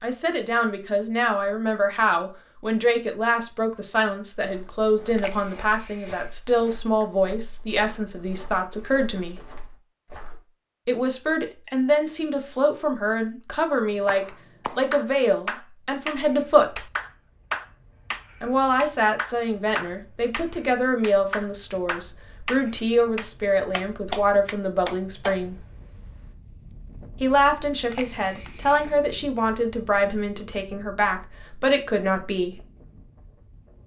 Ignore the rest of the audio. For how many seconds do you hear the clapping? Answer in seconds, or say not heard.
11 s.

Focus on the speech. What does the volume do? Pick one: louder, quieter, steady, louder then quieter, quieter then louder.
steady.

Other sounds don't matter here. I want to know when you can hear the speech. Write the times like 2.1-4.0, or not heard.
0.0-9.4, 10.8-16.8, 18.4-25.6, 27.2-32.6.